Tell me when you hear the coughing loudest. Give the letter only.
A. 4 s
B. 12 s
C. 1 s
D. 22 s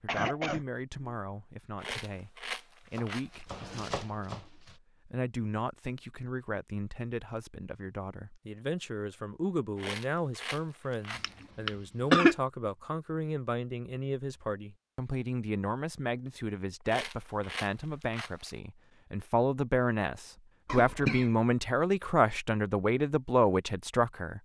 B.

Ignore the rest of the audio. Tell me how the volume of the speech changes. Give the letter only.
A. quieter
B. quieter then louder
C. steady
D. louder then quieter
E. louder
E.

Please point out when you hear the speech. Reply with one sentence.
The speech can be heard from 0.0 to 24.4 s.